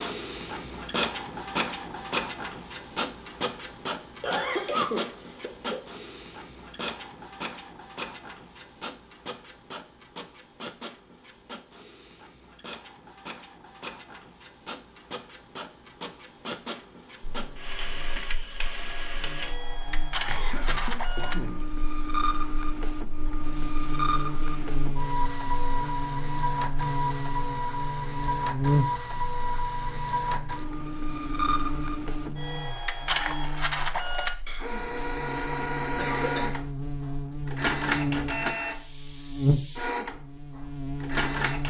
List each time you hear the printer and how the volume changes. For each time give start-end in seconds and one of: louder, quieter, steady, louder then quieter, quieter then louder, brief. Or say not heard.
0.0-41.6 quieter then louder.